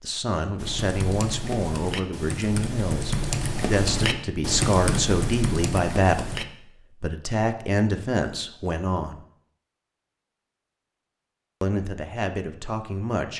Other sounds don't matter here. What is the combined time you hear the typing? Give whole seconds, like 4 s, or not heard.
6 s.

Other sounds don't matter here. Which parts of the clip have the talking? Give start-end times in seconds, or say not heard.
0.0-6.3, 7.0-9.2, 11.6-13.3.